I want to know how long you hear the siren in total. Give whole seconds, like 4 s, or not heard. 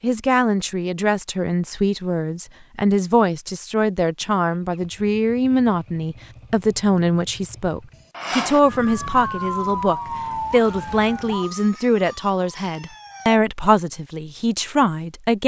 5 s.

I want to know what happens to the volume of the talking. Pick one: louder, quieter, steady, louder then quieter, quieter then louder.
steady.